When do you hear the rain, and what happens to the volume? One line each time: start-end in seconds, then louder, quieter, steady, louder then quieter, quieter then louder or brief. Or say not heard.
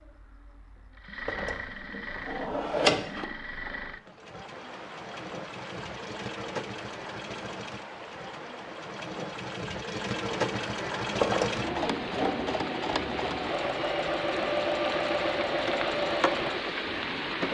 4.2-17.4 louder.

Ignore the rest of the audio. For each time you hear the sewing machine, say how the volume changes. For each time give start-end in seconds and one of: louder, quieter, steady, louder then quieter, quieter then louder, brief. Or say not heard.
0.0-17.4 louder.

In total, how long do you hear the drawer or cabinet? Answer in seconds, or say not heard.
3 s.